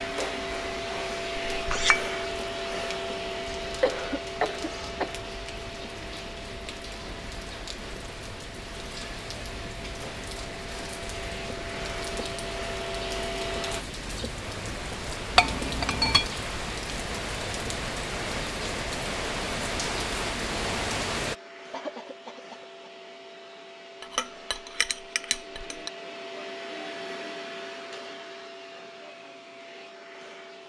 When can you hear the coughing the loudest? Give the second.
4 s.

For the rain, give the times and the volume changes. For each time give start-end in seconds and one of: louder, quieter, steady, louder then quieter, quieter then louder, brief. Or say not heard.
0.0-21.4 louder.